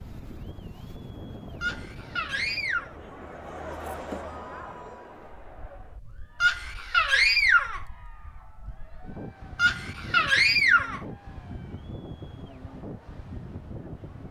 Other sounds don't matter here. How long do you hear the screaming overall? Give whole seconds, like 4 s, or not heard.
4 s.